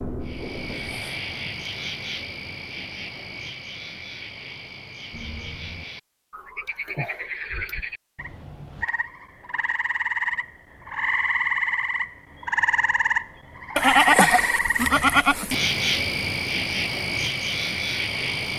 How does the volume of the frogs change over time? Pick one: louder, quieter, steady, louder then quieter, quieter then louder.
louder.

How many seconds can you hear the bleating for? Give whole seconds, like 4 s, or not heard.
2 s.